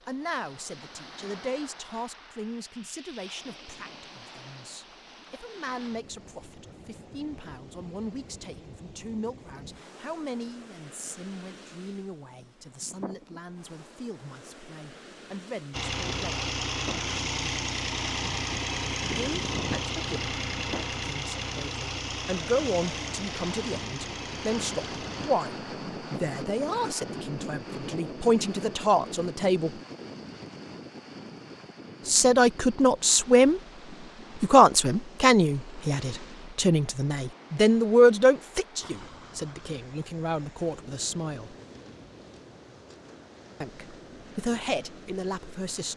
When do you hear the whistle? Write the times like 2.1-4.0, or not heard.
not heard.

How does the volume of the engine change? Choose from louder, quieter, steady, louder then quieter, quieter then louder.
quieter.